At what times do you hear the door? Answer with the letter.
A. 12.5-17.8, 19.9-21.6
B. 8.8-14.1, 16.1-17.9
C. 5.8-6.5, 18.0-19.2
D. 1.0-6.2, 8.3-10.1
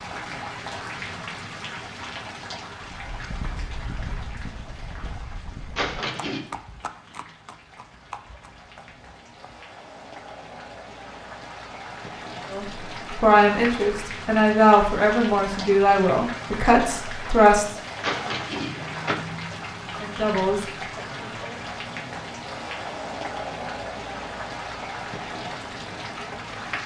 C.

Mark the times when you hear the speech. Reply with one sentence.
You can hear the speech from 12.5 to 17.8 s and from 19.9 to 21.6 s.